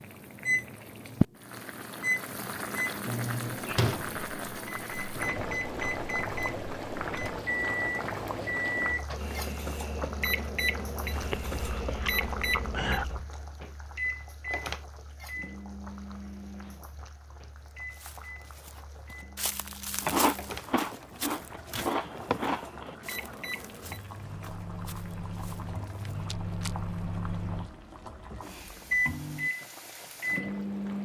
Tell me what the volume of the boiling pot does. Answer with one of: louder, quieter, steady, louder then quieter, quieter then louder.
quieter.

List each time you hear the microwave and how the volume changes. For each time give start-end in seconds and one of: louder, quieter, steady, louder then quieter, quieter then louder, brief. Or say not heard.
0.4-31.0 quieter then louder.